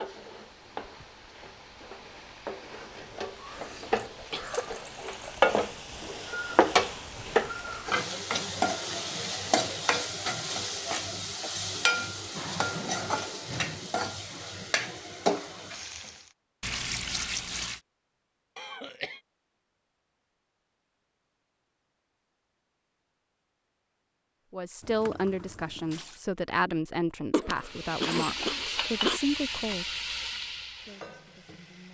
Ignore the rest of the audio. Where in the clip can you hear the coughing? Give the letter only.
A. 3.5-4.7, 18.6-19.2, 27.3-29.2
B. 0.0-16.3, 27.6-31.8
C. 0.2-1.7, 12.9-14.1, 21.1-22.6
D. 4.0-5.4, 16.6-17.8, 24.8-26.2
A.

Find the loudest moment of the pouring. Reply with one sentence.
The volume of the pouring peaks at 17 seconds.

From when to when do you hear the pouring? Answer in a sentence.
You can hear the pouring from 4.0 to 5.4 s, from 16.6 to 17.8 s and from 24.8 to 26.2 s.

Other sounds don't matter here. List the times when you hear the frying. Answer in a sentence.
The frying can be heard from 0.0 to 16.3 s and from 27.6 to 31.8 s.